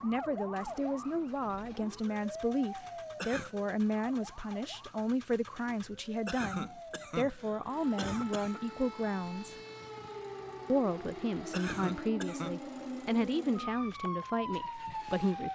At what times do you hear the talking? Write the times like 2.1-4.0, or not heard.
0.0-9.6, 10.7-15.5.